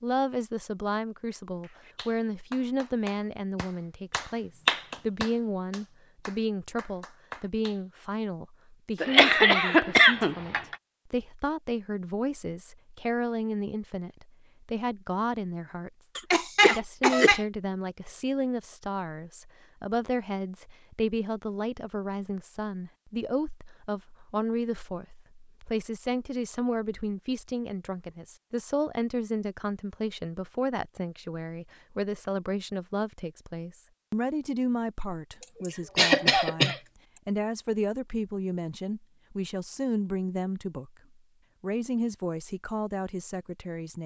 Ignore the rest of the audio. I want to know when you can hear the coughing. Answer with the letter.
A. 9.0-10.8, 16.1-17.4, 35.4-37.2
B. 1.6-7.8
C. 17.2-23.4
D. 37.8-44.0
A.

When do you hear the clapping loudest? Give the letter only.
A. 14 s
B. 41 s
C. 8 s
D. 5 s
D.